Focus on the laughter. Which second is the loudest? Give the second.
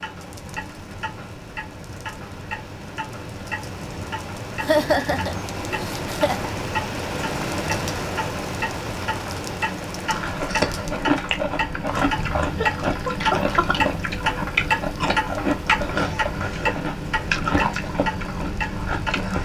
5 s.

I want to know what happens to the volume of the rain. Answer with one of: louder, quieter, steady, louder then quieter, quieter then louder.
louder then quieter.